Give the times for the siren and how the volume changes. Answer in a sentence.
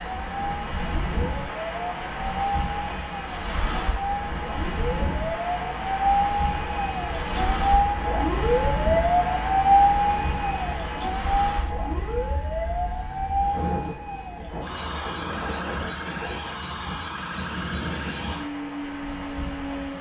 You can hear the siren from 0.0 to 19.9 s, getting louder then quieter.